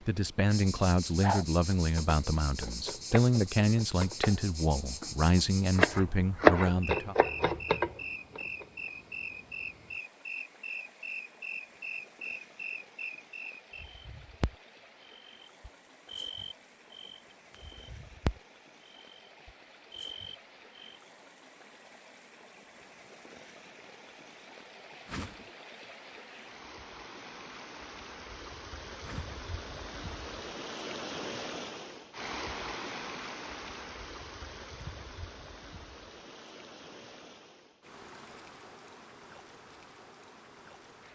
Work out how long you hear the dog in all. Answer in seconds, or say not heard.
not heard.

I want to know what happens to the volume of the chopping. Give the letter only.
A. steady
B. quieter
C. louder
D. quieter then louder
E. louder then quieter
E.